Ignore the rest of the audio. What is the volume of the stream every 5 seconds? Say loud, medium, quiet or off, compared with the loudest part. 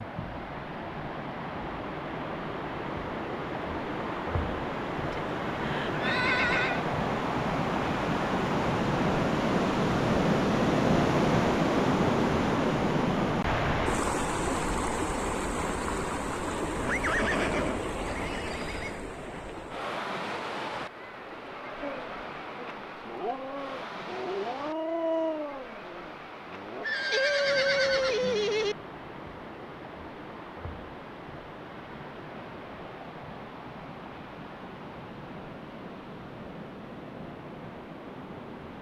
medium, loud, loud, medium, quiet, quiet, quiet, quiet.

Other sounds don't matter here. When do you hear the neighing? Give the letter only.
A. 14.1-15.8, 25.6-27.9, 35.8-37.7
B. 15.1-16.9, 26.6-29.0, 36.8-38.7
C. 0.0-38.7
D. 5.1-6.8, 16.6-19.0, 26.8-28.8
D.